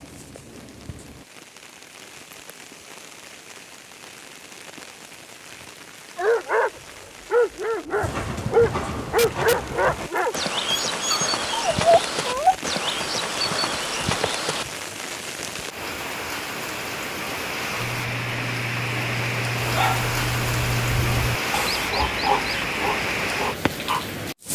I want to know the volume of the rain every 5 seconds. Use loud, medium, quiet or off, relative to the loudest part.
quiet, quiet, medium, loud, loud.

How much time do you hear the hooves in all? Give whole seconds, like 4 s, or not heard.
7 s.